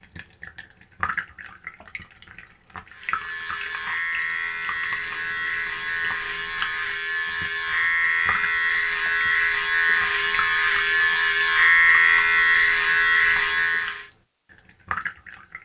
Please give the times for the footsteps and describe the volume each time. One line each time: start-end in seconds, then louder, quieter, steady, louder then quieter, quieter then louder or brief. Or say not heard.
not heard.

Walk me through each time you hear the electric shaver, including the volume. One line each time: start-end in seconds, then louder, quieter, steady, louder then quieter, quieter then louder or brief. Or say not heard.
2.9-14.1 louder.